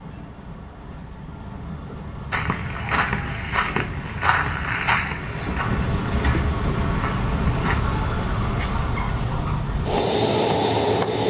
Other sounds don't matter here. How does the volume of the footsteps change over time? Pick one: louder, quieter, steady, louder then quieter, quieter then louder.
quieter.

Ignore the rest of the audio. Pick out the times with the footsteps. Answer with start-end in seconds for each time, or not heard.
2.3-9.5.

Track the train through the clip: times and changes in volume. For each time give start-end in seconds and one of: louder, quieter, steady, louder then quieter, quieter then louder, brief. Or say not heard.
0.0-11.2 louder.